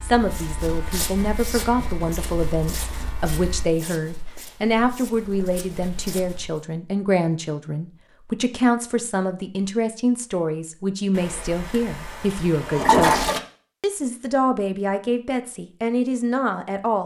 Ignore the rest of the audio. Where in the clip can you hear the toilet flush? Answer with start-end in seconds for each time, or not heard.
11.2-13.4.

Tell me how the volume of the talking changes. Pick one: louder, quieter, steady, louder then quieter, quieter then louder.
steady.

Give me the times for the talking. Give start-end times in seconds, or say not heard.
0.0-17.0.